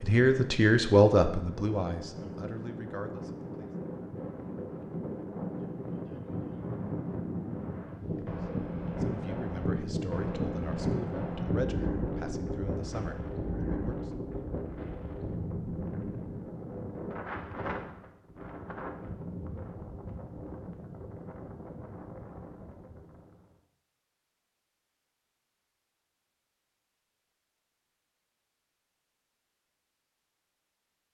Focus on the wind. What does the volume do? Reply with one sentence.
The loudness of the wind goes up, then down.